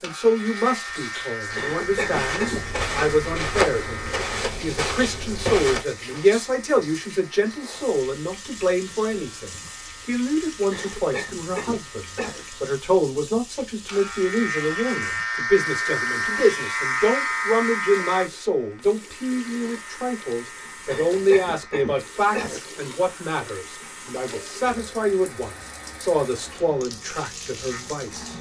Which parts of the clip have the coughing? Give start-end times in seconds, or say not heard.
1.6-2.6, 10.7-12.4, 20.9-22.6.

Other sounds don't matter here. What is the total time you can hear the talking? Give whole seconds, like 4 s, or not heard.
28 s.